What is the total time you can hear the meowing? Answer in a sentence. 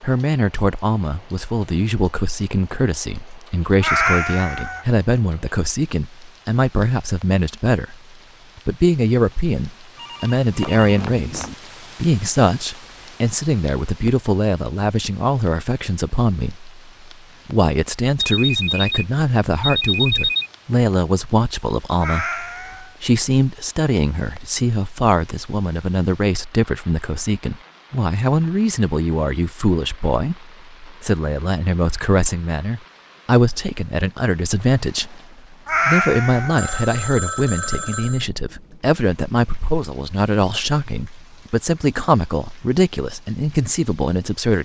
The meowing can be heard for 3 seconds in total.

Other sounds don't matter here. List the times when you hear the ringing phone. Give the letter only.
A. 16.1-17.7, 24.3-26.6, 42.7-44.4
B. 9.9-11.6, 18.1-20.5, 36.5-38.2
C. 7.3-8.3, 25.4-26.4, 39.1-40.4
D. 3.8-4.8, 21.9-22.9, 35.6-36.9
B.